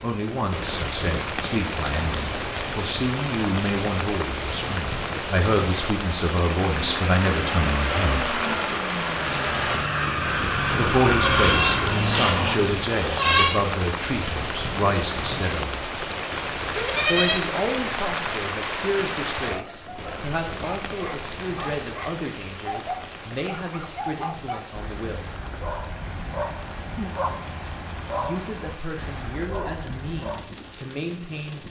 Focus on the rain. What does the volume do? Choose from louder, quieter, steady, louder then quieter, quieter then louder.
quieter.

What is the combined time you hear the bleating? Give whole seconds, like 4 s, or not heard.
3 s.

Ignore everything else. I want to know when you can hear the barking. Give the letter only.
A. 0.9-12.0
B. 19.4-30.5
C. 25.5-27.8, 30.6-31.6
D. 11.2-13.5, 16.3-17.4
B.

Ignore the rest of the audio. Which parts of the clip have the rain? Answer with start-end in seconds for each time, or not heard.
0.0-31.6.